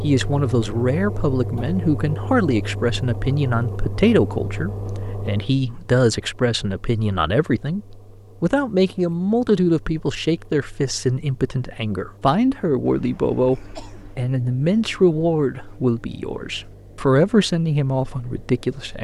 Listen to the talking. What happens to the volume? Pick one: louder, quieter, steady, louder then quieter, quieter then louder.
steady.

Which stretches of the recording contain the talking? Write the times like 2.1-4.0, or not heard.
0.0-18.9.